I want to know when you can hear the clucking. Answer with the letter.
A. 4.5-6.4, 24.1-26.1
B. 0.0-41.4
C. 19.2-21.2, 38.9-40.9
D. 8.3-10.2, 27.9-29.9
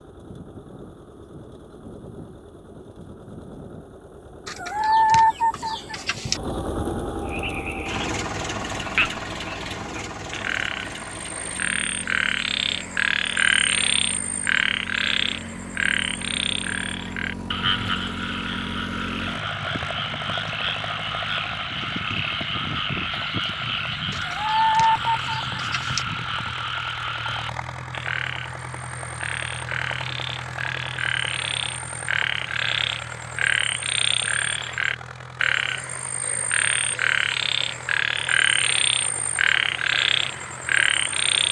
A.